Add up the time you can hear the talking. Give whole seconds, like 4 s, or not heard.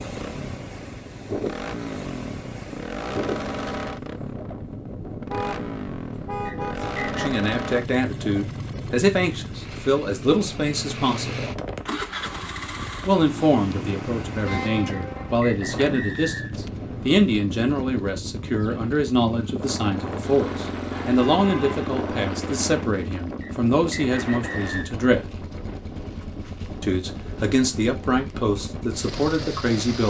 20 s.